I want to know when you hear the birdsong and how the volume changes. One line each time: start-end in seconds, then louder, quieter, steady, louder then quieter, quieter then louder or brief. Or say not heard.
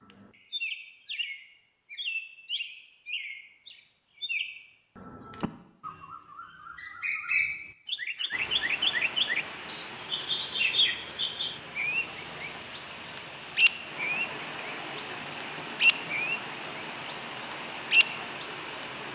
0.1-18.9 louder.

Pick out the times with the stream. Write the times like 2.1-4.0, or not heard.
8.3-19.1.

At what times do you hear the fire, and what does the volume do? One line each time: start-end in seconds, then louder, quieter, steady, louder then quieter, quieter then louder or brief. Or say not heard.
not heard.